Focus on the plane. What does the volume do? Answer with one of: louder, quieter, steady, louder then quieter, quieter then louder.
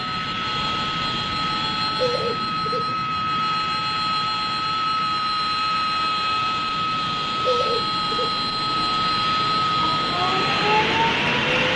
steady.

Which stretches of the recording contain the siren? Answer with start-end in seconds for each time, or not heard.
9.8-11.6.